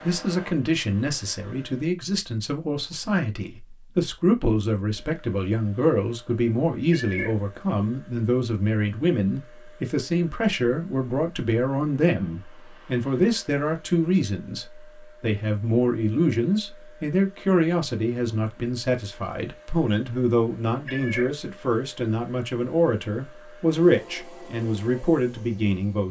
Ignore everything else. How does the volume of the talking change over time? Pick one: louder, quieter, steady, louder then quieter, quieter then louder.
steady.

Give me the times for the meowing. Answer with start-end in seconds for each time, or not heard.
6.9-7.3, 20.9-21.3.